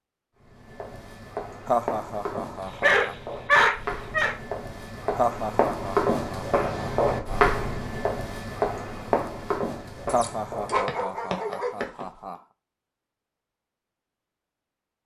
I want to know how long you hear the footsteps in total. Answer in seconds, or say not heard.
12 s.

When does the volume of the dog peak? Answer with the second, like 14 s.
4 s.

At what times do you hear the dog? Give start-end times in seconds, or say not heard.
2.6-4.3, 10.0-11.8.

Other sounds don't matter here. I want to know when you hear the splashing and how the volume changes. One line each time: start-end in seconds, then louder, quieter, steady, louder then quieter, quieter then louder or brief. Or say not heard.
not heard.